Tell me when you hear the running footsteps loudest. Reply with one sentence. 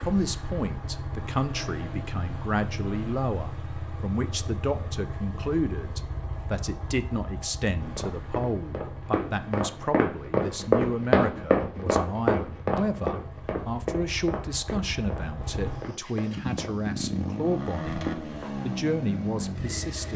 The volume of the running footsteps peaks at 11 seconds.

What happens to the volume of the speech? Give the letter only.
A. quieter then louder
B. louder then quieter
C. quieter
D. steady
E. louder
D.